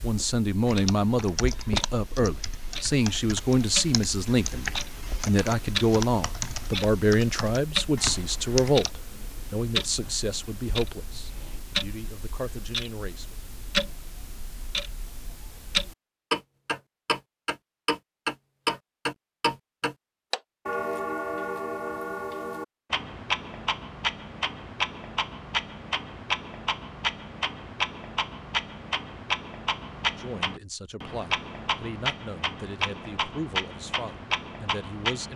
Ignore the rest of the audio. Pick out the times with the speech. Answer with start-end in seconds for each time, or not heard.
0.0-13.3, 30.1-35.3.